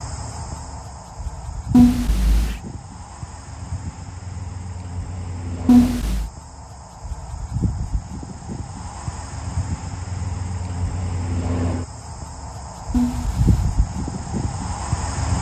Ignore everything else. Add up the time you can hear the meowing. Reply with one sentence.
You can hear the meowing for 2 seconds altogether.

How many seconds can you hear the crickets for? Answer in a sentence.
You can hear the crickets for 15 seconds altogether.